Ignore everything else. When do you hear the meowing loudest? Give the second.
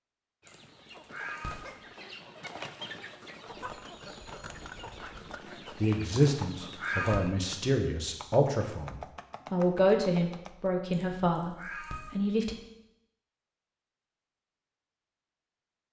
7 s.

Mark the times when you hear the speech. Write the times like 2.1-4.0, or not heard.
5.8-12.6.